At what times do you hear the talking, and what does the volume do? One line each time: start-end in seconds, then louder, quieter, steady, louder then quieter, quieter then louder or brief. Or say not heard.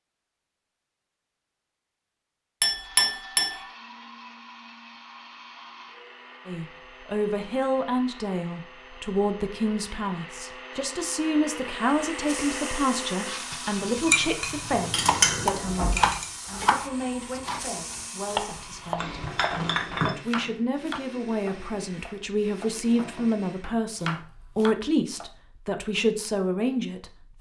6.5-27.3 quieter then louder.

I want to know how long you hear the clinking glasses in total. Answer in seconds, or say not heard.
5 s.